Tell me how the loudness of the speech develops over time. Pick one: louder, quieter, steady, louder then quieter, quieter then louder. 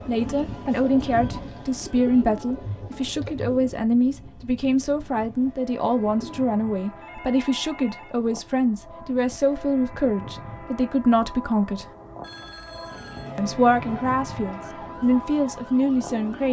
steady.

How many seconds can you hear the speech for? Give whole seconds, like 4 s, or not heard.
15 s.